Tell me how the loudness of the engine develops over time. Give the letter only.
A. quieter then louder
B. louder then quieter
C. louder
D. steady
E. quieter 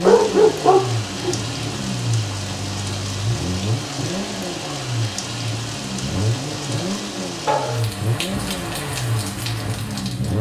D.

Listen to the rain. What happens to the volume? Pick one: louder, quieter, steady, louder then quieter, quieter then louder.
steady.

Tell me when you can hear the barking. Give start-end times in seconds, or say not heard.
0.0-1.8, 7.5-8.5.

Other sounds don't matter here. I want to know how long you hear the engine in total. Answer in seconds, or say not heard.
10 s.